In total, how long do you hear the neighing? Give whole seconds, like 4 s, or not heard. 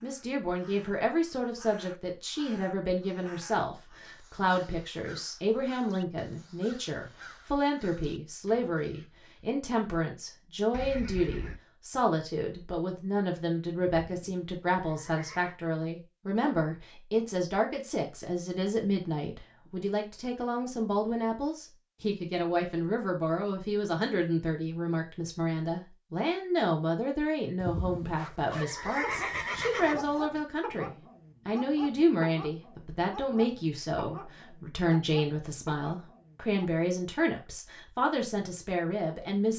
5 s.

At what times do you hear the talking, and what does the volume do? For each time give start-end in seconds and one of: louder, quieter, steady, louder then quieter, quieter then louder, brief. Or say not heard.
0.0-39.5 steady.